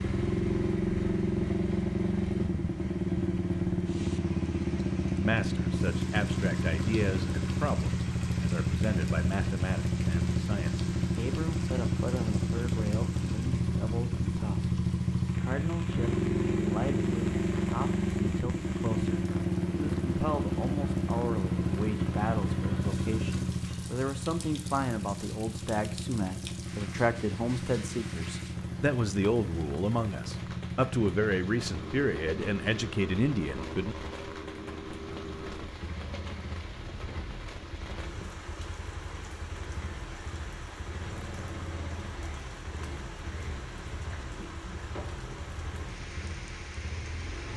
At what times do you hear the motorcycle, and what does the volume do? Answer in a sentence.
The motorcycle can be heard from 0.0 to 47.5 s, getting quieter.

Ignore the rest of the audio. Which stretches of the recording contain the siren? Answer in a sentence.
The siren can't be heard in this clip.